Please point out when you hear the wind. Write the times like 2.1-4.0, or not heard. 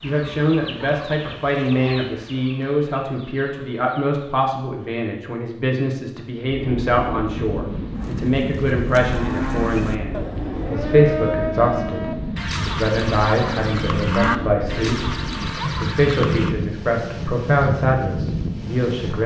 6.5-19.2.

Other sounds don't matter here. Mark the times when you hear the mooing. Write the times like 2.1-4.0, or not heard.
8.0-16.6.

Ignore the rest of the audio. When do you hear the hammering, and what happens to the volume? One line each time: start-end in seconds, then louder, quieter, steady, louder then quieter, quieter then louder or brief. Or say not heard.
not heard.